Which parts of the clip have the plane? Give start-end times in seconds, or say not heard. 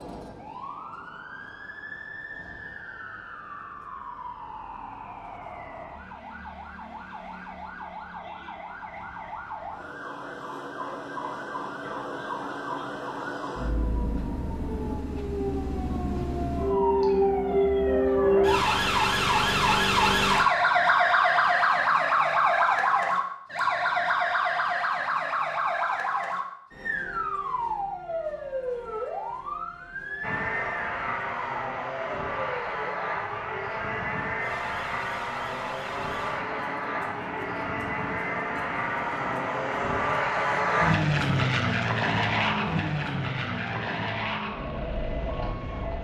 30.2-45.9.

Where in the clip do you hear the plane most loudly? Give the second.
41 s.